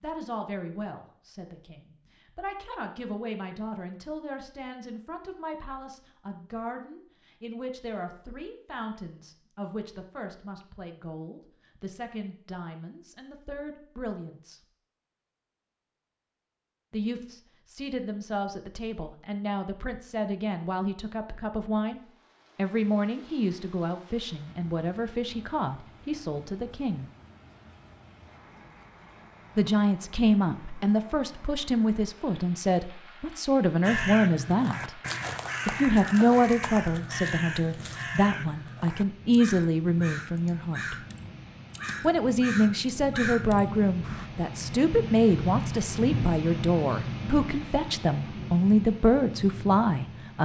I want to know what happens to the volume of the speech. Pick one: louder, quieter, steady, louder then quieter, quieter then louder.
louder.